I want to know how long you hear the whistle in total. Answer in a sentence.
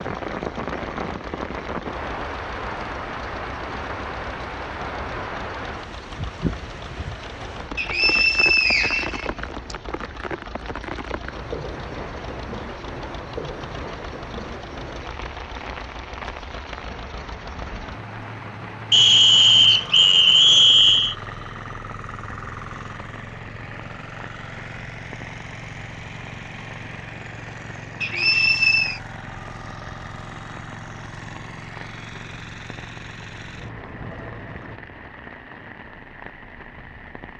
The whistle can be heard for 5 seconds in total.